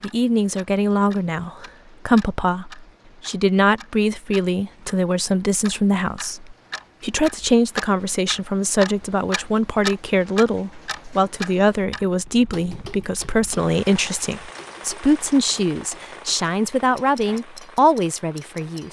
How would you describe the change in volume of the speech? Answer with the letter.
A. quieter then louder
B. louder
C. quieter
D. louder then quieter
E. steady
E.